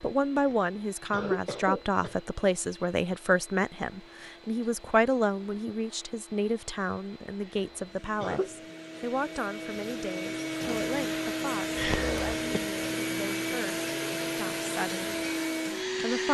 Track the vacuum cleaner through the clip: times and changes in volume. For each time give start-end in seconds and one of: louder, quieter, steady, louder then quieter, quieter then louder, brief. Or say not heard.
0.0-16.2 louder.